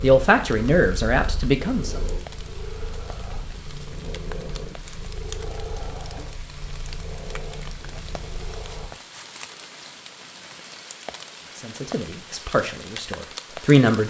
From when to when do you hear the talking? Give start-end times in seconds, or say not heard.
0.0-2.0, 11.6-14.0.